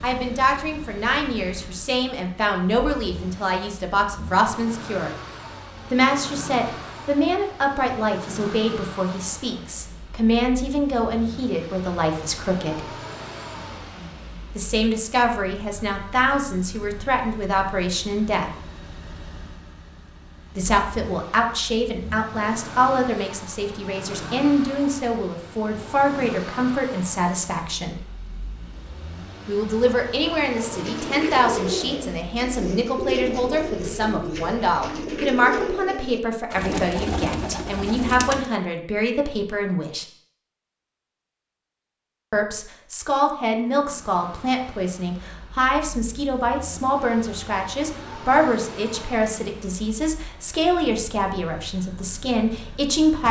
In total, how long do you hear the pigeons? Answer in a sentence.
The pigeons can be heard for 8 seconds in total.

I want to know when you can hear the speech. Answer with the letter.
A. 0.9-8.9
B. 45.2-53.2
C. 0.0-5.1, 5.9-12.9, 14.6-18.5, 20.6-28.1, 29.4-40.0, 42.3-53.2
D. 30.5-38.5
C.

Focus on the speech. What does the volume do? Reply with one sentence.
The loudness of the speech stays about the same.